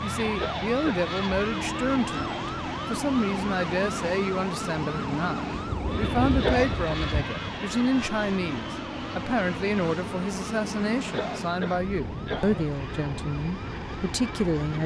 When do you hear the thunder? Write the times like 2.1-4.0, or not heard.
5.5-7.2.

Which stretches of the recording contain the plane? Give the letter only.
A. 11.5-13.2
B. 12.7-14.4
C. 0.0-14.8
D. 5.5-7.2
C.